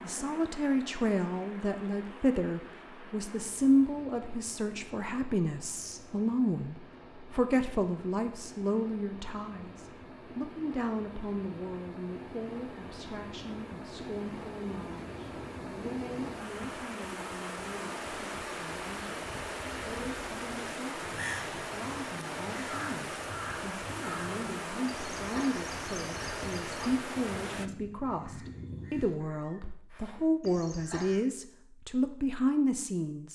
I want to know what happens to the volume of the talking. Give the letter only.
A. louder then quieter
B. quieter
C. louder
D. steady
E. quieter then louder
E.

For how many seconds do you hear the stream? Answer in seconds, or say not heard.
28 s.